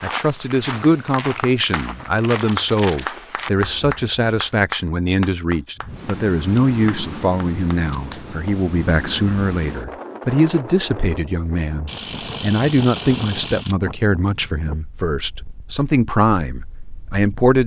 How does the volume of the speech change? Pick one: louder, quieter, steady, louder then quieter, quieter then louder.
steady.